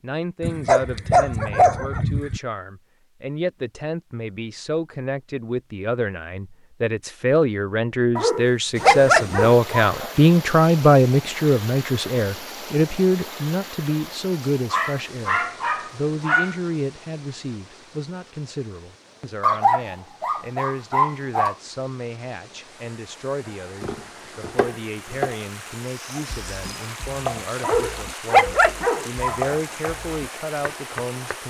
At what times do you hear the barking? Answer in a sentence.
The barking can be heard from 0.4 to 2.4 s, from 8.2 to 10.1 s, from 14.7 to 16.6 s, from 19.4 to 21.6 s and from 27.6 to 29.6 s.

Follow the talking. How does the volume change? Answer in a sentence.
The loudness of the talking goes up, then down.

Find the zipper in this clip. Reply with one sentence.
You can't hear the zipper here.